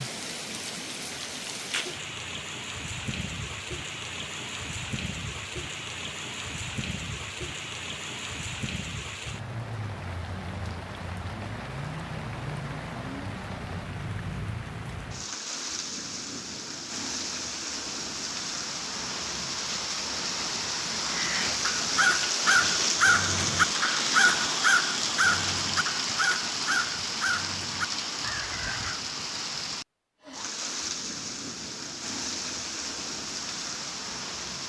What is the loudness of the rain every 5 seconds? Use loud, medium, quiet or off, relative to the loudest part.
medium, medium, medium, medium, loud, loud, medium.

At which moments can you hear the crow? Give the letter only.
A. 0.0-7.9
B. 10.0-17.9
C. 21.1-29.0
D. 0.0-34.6
C.